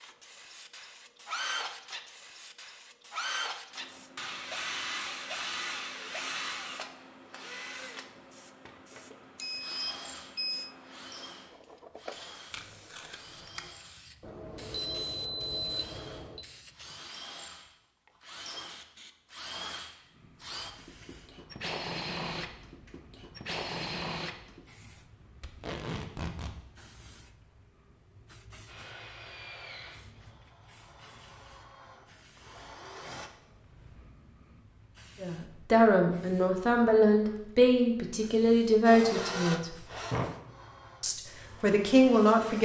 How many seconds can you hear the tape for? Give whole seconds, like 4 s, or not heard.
2 s.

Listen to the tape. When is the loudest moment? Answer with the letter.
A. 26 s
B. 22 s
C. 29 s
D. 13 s
A.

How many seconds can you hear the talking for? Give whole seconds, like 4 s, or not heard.
6 s.